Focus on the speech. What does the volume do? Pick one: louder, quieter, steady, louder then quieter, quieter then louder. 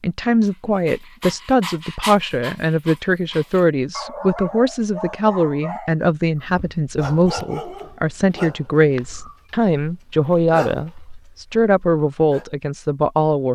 steady.